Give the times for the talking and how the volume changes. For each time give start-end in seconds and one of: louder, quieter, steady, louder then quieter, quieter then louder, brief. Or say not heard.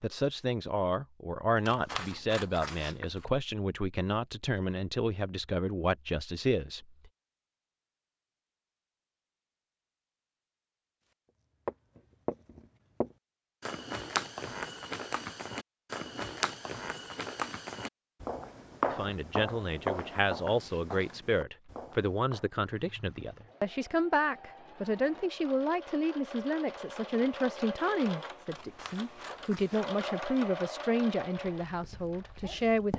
0.0-6.8 steady
18.9-32.9 steady.